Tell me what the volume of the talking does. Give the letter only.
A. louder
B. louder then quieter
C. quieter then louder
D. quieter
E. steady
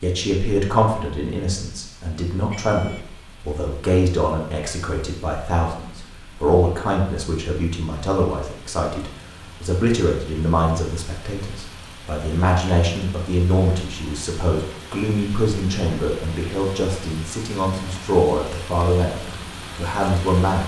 E.